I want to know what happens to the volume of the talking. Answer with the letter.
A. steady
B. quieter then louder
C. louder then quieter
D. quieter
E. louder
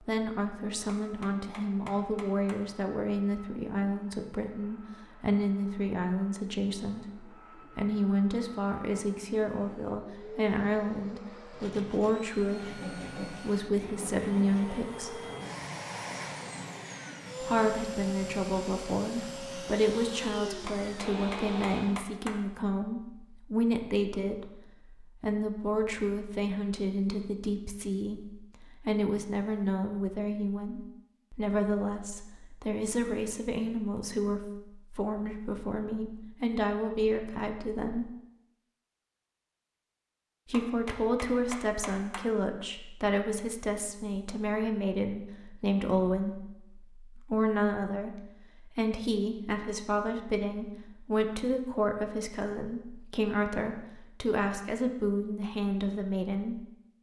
A.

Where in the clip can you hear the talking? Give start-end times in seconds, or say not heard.
0.1-15.2, 17.4-38.1, 40.5-56.6.